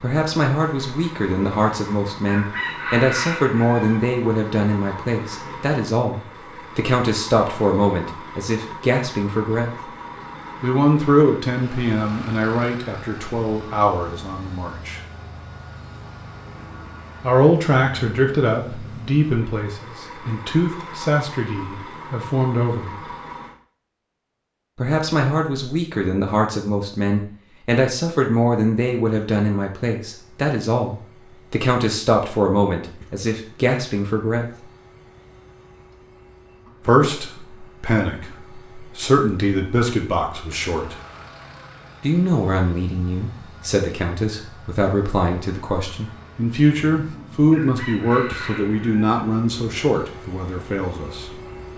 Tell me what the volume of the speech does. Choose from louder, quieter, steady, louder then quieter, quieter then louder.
steady.